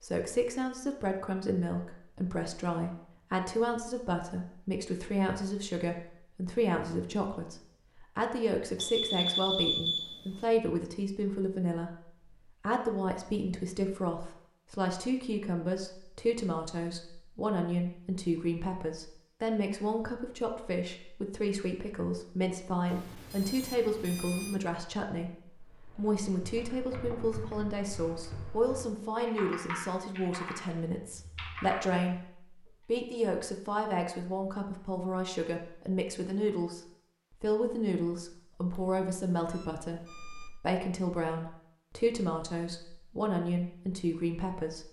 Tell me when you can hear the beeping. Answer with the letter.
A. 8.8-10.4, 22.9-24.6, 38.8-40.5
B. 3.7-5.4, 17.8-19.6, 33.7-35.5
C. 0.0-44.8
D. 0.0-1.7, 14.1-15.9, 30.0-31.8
A.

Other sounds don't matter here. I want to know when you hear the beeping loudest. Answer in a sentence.
The loudest moment of the beeping is at 10 seconds.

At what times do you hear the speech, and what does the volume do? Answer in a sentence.
You can hear the speech from 0.0 to 44.8 s, at a steady volume.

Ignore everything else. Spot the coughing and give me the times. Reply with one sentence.
The coughing can't be heard in this clip.